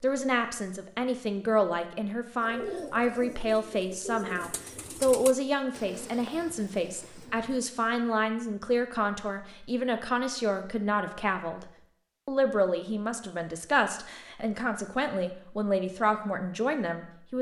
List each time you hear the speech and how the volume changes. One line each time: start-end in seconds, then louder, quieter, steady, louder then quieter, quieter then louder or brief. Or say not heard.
0.0-17.3 steady.